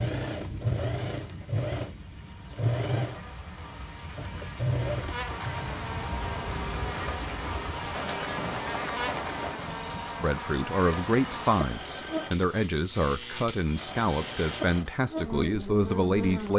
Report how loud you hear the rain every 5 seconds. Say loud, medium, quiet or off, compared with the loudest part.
medium, loud, off, off.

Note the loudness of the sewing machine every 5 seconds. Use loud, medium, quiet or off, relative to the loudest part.
loud, medium, medium, medium.